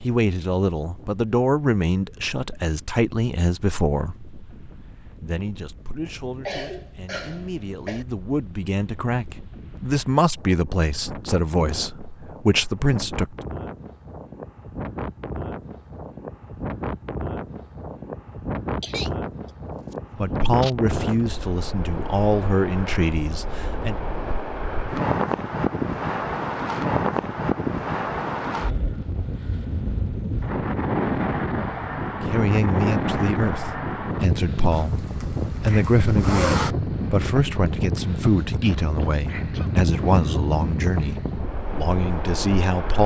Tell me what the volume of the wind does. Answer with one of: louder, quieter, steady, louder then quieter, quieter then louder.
louder.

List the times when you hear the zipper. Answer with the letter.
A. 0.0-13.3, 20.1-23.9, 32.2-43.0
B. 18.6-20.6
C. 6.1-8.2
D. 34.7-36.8
D.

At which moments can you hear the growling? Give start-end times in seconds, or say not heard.
not heard.